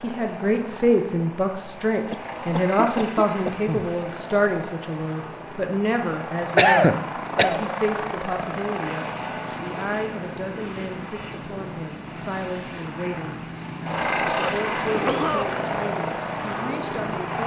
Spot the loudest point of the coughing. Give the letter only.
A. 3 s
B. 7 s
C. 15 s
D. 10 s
B.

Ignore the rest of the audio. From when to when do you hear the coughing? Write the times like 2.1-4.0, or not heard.
2.1-3.9, 6.5-7.6, 14.4-15.4.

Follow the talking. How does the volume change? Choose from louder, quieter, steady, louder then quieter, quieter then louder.
quieter.